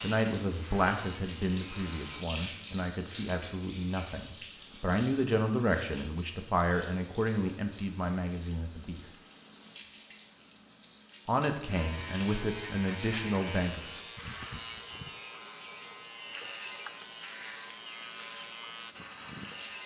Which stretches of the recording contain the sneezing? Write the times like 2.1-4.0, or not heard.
14.2-15.2.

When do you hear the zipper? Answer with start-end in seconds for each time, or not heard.
not heard.